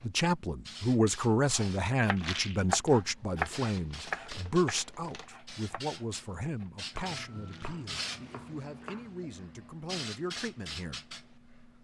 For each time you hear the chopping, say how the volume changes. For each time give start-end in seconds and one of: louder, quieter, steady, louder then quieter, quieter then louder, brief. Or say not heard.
1.4-9.1 quieter.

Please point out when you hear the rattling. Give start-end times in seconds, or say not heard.
2.1-2.6, 7.4-7.8.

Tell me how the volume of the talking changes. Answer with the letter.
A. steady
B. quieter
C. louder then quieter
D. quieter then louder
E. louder
B.